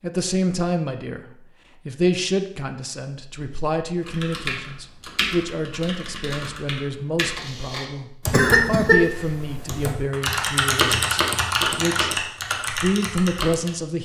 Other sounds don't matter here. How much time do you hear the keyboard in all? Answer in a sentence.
The keyboard can be heard for 10 seconds in total.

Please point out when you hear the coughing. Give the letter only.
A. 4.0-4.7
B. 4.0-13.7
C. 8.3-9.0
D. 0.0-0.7
C.